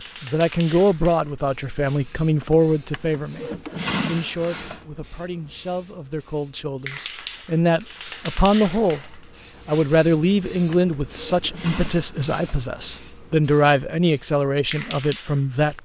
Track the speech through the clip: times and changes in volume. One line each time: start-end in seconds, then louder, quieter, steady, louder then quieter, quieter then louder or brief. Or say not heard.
0.2-15.7 quieter then louder.